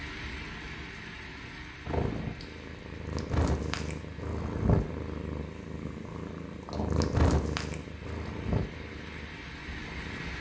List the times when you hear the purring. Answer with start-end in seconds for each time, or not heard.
1.4-10.3.